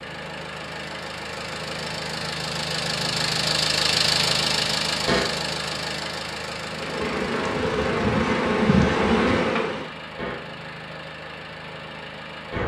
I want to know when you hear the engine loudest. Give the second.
4 s.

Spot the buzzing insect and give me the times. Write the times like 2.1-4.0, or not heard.
6.6-9.9.